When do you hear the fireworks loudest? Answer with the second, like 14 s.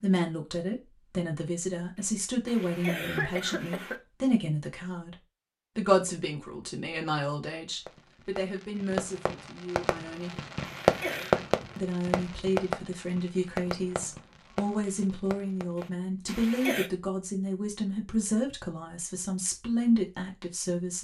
11 s.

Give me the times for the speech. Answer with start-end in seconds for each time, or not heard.
0.0-5.2, 5.8-10.4, 11.8-20.9.